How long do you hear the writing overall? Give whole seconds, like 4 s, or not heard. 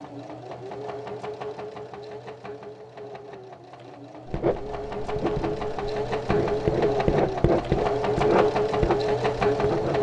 6 s.